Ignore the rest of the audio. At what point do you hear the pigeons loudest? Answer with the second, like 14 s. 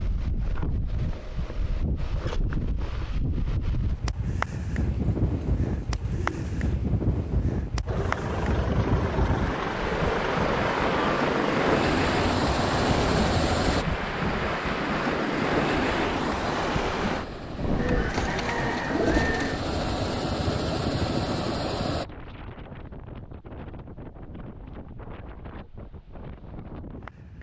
19 s.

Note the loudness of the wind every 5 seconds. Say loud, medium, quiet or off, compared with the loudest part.
medium, loud, loud, loud, quiet, quiet.